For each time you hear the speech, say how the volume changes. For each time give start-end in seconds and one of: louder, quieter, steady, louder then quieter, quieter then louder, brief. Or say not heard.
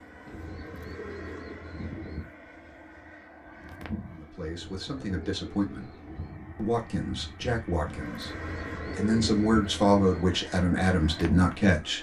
4.1-6.0 brief
6.5-11.9 quieter then louder.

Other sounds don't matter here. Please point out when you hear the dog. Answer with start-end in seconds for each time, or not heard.
not heard.